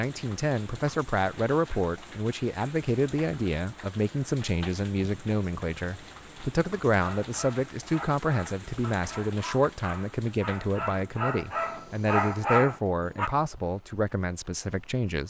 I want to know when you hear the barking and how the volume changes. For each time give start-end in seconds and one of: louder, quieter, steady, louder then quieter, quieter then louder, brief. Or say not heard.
6.9-13.3 louder.